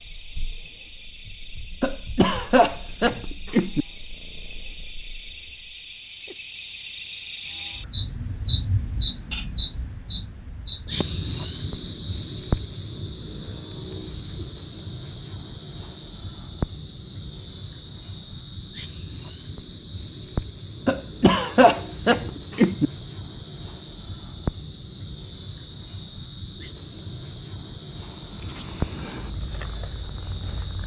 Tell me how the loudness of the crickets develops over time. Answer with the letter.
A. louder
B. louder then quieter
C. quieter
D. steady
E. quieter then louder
B.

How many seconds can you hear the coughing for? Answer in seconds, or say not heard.
4 s.